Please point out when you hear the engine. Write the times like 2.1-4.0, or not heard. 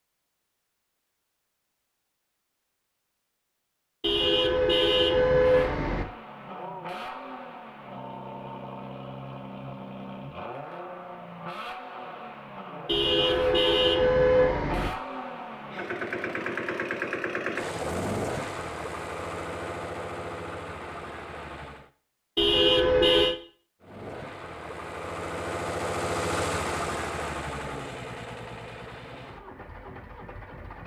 5.3-21.9, 23.8-30.8.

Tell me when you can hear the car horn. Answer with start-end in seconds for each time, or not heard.
4.0-6.0, 12.8-14.9, 22.4-23.4.